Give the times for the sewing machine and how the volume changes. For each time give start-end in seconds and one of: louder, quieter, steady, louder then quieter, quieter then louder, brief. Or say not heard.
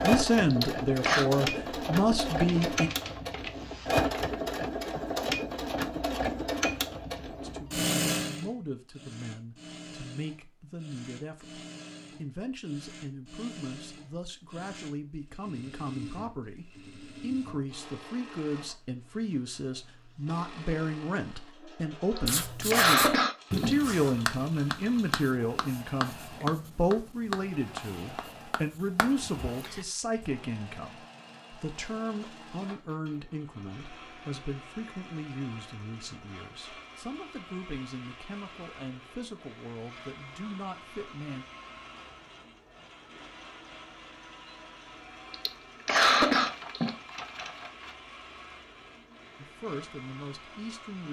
0.0-51.0 quieter.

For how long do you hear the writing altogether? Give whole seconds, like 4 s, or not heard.
8 s.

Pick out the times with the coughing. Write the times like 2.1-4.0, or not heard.
0.5-1.2, 22.1-23.8, 45.3-47.0.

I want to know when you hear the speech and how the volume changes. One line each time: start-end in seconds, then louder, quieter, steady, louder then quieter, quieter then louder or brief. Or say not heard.
0.0-2.9 brief
7.4-41.5 louder then quieter
49.4-51.0 brief.